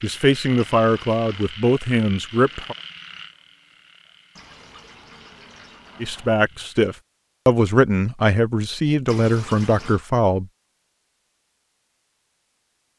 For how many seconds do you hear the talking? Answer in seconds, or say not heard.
7 s.